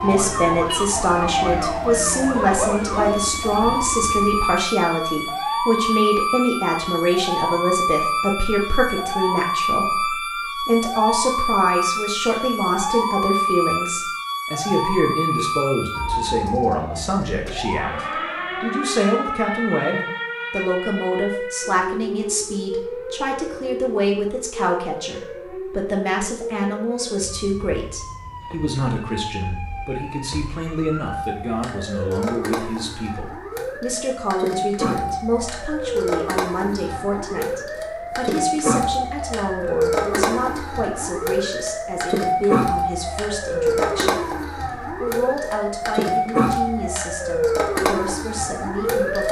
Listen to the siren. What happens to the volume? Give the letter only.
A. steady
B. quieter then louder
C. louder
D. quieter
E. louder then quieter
B.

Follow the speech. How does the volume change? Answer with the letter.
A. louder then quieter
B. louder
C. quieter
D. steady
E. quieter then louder
C.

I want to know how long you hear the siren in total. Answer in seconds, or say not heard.
49 s.